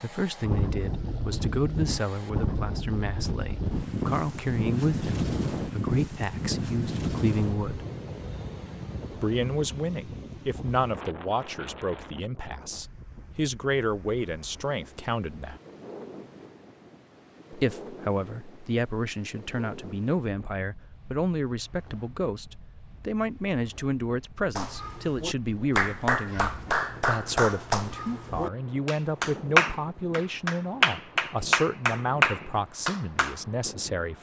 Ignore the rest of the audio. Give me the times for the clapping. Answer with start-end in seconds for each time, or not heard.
24.6-33.4.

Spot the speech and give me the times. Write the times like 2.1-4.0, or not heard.
0.0-7.8, 9.1-15.6, 17.5-34.1.